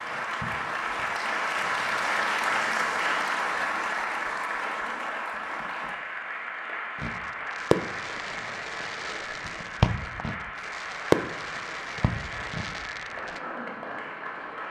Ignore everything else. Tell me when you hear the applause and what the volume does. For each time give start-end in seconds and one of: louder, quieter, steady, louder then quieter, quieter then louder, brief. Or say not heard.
0.0-14.6 quieter.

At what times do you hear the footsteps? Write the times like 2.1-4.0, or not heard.
not heard.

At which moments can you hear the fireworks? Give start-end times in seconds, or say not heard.
7.0-13.4.